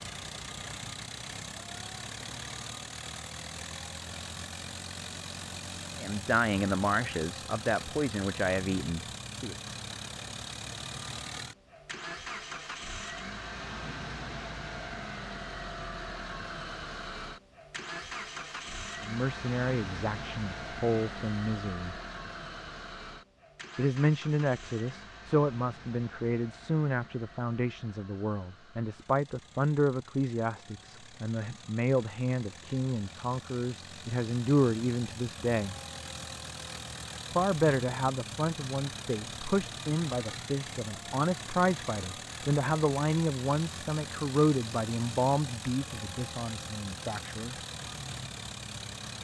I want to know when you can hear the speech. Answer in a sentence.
The speech can be heard from 6.0 to 9.6 s, from 19.0 to 21.9 s, from 23.8 to 35.8 s and from 37.4 to 47.5 s.